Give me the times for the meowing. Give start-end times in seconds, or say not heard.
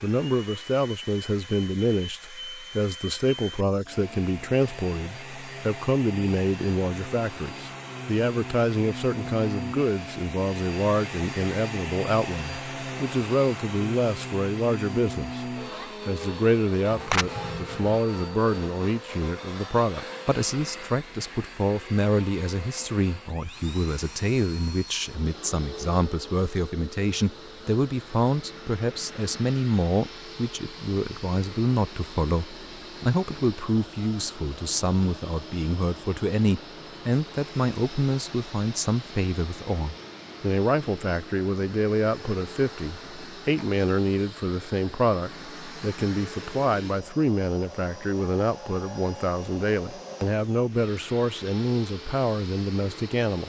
16.9-18.0.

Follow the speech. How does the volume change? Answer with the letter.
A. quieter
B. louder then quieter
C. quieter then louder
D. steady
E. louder
D.